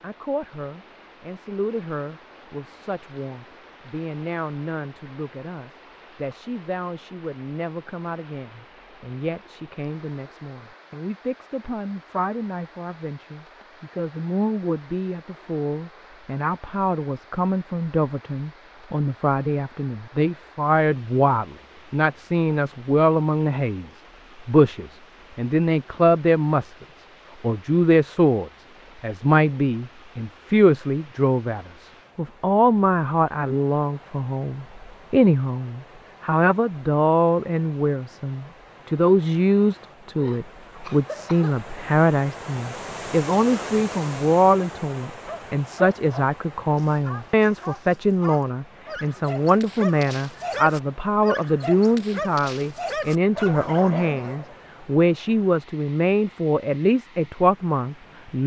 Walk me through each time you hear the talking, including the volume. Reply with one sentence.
You can hear the talking from 0.0 to 58.4 s, getting louder.